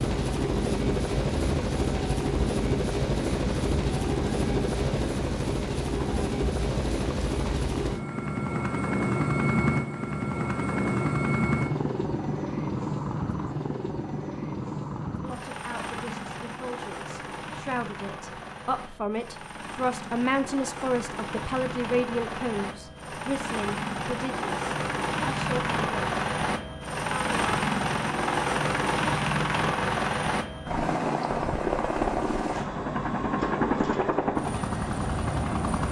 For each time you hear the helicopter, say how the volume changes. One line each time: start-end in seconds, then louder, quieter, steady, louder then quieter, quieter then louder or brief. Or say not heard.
0.0-35.8 quieter then louder.